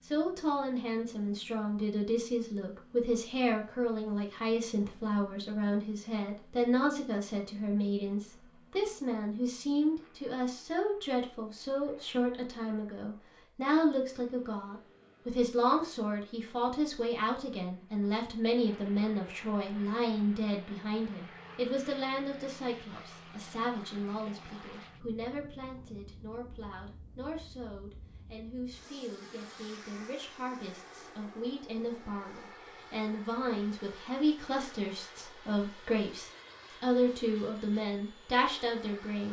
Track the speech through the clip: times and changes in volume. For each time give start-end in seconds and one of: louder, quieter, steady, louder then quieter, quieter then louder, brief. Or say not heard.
0.1-39.2 quieter then louder.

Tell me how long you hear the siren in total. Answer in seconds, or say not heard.
not heard.